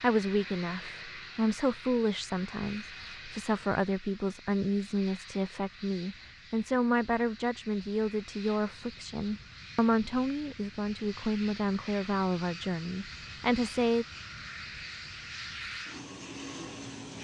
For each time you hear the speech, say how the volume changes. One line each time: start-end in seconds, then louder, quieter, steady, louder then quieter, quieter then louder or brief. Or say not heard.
0.0-14.1 steady.